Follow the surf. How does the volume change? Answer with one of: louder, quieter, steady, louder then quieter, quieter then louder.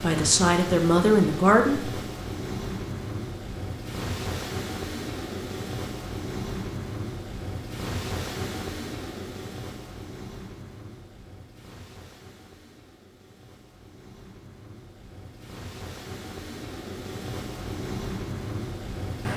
quieter then louder.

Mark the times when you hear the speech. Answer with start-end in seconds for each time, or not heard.
0.0-1.9.